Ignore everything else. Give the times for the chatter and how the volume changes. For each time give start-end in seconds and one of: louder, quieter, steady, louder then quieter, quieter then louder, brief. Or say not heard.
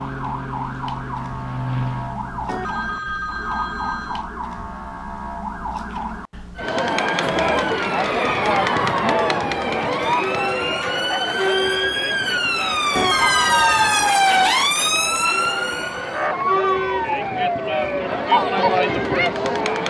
6.5-19.8 quieter then louder.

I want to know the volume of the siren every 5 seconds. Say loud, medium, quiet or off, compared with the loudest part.
medium, medium, loud, loud.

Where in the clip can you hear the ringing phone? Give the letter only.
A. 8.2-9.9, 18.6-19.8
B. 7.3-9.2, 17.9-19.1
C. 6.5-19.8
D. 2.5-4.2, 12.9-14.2
D.